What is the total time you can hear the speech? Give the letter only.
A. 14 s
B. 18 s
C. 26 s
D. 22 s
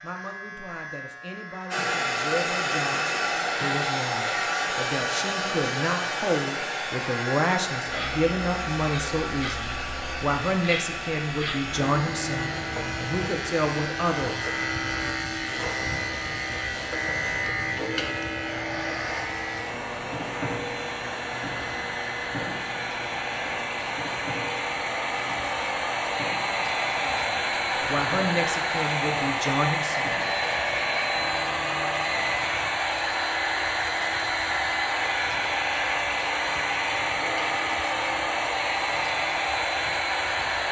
B.